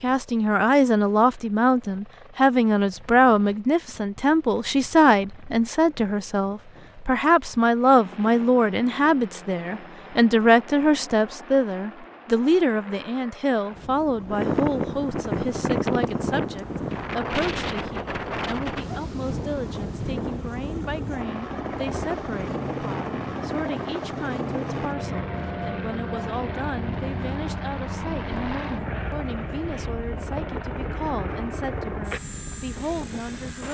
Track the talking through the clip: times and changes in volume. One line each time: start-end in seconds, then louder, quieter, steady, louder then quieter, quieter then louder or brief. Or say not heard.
0.0-33.6 quieter.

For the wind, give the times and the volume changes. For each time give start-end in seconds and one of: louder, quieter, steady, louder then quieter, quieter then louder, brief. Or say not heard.
14.2-33.6 quieter.